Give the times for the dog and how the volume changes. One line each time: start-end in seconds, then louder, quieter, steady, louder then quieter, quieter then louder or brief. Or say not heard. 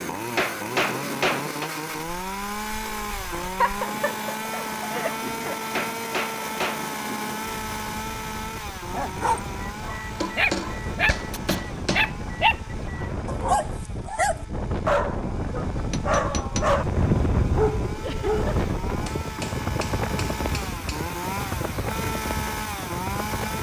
8.9-18.6 steady.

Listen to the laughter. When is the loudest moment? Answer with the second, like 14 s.
4 s.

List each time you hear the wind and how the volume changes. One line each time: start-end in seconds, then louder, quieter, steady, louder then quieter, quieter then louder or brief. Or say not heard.
0.0-23.5 louder.